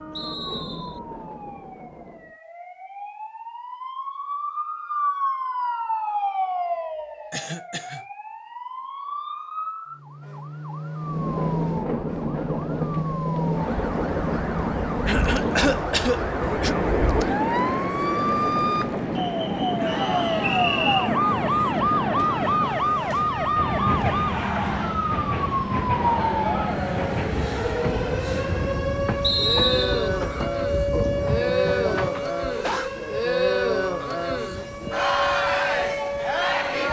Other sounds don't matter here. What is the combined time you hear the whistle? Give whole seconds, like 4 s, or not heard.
2 s.